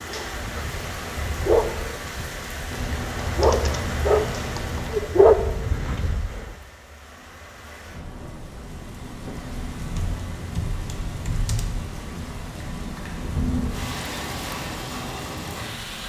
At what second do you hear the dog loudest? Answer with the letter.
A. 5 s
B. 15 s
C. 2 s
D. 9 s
A.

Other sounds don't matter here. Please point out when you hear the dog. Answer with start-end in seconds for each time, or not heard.
0.1-6.3.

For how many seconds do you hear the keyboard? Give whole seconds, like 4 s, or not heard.
4 s.